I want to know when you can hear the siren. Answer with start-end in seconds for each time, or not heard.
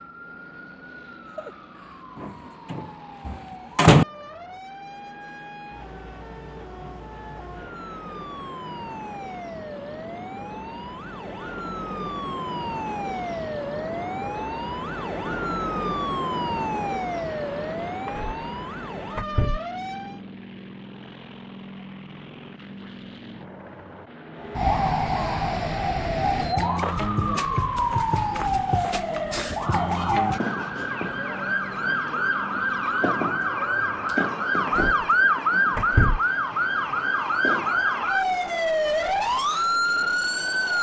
0.0-20.2, 24.4-40.7.